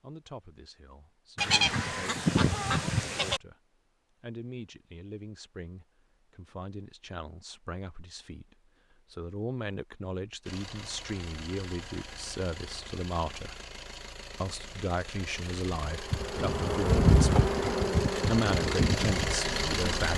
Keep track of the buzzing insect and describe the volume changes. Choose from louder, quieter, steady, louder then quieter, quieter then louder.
louder then quieter.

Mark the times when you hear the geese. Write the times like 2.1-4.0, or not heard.
1.4-3.4.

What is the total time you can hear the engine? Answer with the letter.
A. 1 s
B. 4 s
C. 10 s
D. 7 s
C.